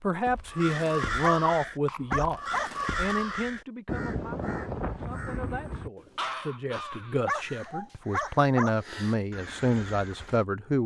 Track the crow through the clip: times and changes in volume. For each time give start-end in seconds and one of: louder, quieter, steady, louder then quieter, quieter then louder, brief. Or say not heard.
0.2-10.4 quieter.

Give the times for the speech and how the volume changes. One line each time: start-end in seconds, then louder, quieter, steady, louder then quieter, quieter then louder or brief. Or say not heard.
0.0-10.8 quieter then louder.